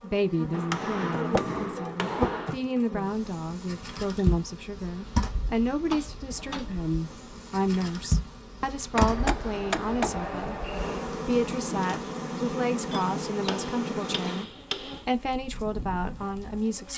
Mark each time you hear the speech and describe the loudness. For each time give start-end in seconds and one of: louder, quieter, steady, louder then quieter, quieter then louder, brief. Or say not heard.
0.0-14.4 steady
15.1-16.9 brief.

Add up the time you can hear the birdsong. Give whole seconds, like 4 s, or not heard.
not heard.